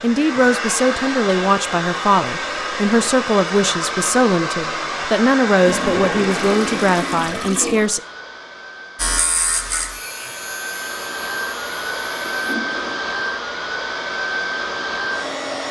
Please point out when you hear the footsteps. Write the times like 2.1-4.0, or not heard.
not heard.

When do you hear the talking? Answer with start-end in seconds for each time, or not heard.
0.0-8.0.